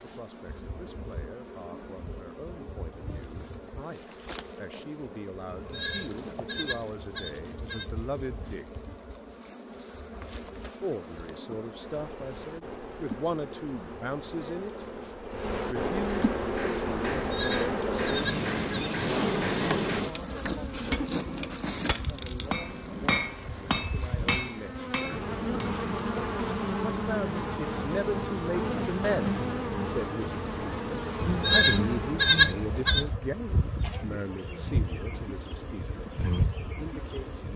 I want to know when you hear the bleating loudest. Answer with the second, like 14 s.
32 s.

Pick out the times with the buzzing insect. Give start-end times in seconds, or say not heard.
0.0-37.5.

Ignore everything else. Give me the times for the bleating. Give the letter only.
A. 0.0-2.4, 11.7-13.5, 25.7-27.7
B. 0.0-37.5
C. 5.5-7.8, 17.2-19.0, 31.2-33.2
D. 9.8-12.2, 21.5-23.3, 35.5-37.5
C.